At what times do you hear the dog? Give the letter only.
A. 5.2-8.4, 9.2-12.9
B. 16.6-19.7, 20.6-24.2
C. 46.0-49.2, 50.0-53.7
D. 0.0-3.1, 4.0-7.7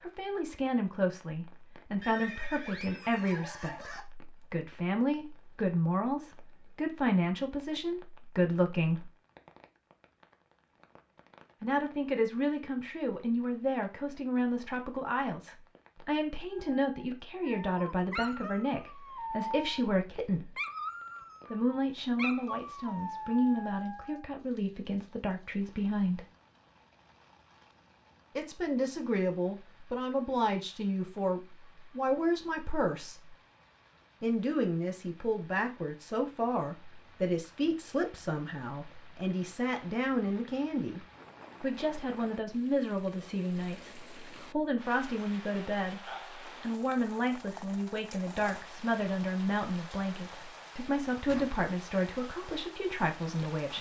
B.